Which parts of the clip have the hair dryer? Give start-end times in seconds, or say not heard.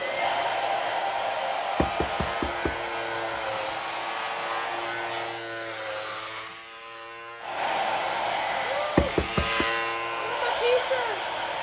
0.0-5.5, 7.4-11.5.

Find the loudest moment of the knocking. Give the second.
9 s.